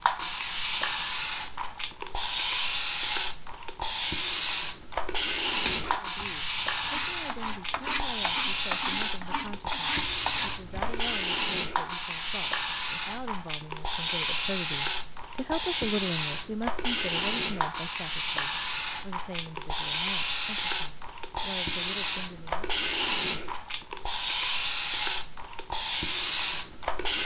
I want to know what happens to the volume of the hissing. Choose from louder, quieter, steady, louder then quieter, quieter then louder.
steady.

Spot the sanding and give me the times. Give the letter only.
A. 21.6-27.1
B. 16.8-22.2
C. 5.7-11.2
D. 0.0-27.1
C.